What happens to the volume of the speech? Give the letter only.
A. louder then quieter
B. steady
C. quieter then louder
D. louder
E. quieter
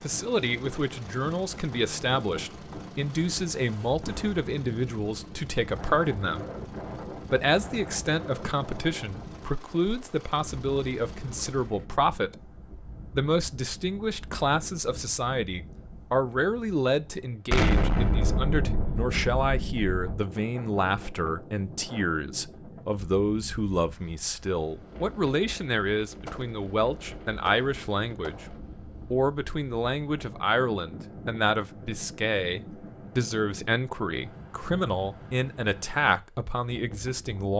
B.